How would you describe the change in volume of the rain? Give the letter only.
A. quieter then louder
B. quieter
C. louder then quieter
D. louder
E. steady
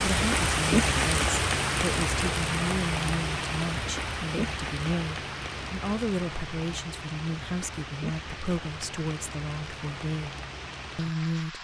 B.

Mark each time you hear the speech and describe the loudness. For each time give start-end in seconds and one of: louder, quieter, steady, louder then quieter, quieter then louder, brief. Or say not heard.
0.0-10.3 steady
10.9-11.5 brief.